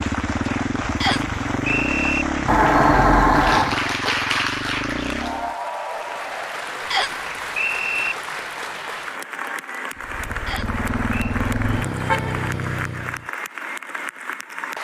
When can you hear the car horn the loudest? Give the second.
3 s.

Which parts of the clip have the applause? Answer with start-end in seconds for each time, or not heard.
0.0-14.7.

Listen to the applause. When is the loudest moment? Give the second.
4 s.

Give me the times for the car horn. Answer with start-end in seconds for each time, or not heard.
2.5-3.8, 10.7-12.6.